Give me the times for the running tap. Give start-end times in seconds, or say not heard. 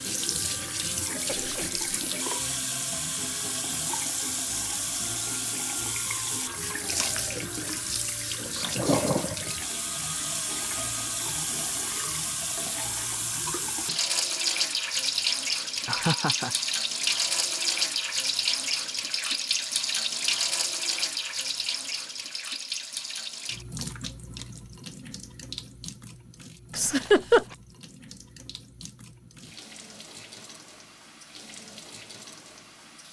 0.0-33.0.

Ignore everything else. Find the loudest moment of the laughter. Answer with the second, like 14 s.
27 s.